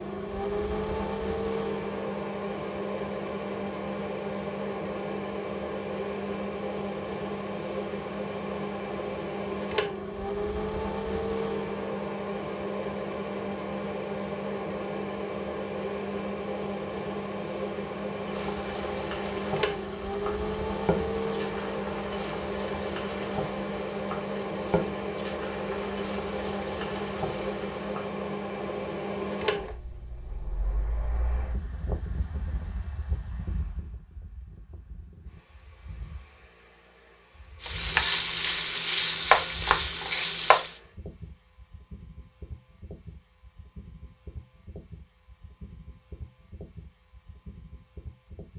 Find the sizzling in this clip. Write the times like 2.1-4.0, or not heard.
18.2-28.1, 37.6-40.8.